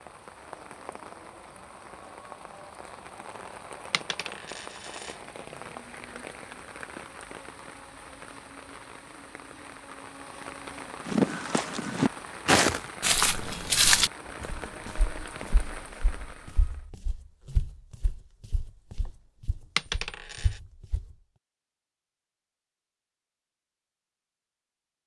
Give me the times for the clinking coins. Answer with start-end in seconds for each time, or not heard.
3.9-5.2, 19.8-20.6.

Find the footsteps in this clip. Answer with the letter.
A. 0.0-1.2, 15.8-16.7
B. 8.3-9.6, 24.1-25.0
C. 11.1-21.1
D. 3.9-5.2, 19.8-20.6
C.